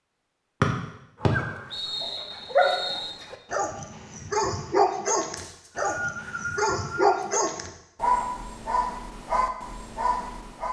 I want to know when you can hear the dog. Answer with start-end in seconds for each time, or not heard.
1.2-10.6.